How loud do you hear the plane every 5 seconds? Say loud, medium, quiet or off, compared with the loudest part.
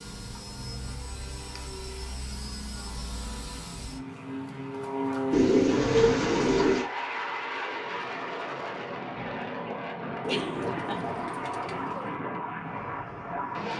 medium, loud, loud.